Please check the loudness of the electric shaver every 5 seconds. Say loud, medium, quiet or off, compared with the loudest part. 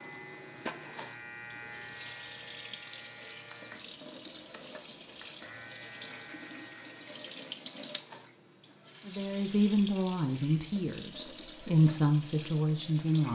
loud, loud, off.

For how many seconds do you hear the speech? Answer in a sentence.
The speech can be heard for 4 seconds in total.